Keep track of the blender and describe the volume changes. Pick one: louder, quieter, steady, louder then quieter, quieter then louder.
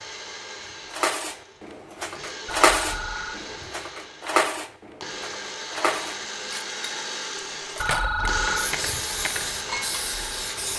louder.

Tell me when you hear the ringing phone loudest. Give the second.
8 s.